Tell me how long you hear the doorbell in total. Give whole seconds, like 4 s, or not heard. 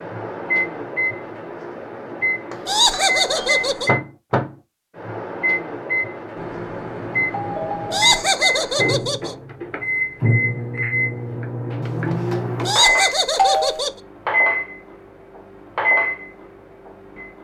5 s.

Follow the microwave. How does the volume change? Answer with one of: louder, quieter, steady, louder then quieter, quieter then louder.
steady.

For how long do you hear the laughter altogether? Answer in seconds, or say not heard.
4 s.